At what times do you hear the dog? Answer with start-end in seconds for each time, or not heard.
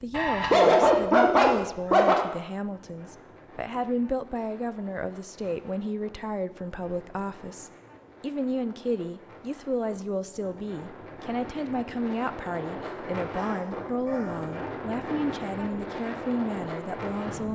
0.1-2.1, 12.8-14.6.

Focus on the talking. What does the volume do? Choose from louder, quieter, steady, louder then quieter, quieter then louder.
steady.